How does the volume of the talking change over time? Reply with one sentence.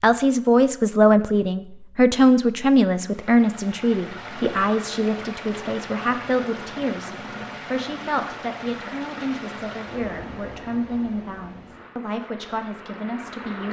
The volume of the talking goes down.